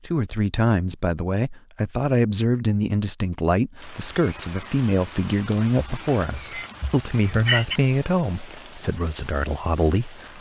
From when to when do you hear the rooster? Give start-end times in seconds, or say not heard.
5.9-7.8.